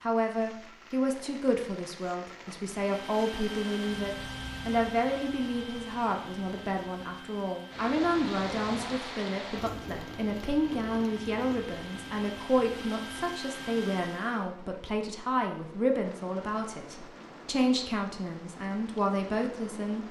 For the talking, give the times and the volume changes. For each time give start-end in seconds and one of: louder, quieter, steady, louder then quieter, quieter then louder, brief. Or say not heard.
0.0-20.0 steady.